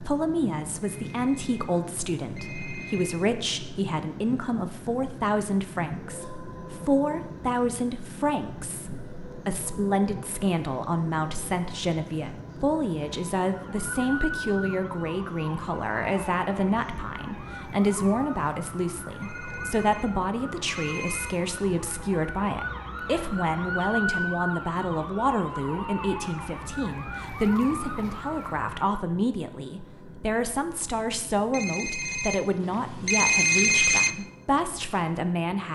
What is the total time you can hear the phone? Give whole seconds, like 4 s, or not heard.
7 s.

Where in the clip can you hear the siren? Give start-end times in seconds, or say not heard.
13.4-29.0.